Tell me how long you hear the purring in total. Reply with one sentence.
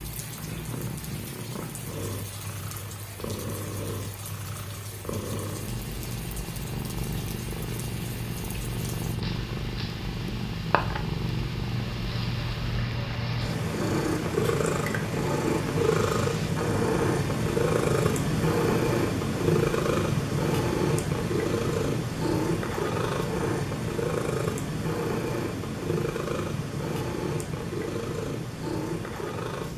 The purring can be heard for 30 seconds in total.